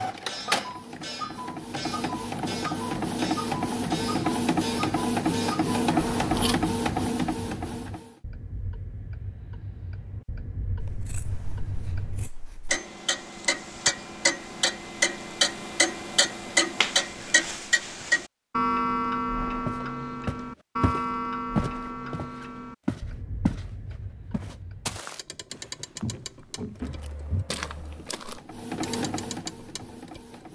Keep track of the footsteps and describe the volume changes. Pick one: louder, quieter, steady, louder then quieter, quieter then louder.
quieter.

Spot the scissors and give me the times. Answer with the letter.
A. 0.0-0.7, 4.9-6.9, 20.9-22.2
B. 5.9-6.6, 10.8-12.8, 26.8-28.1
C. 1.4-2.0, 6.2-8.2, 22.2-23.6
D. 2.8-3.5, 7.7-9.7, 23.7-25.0
B.